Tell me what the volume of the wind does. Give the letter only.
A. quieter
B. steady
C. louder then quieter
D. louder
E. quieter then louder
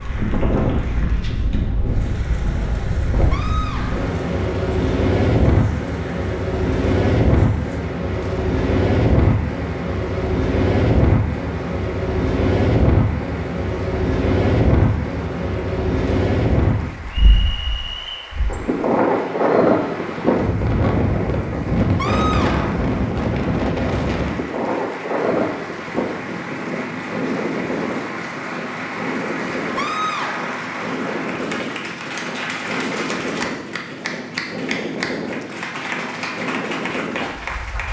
A.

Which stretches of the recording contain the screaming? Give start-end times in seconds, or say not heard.
3.3-4.1, 21.9-22.8, 29.8-30.6.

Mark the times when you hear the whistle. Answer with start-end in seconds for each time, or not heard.
17.1-18.4.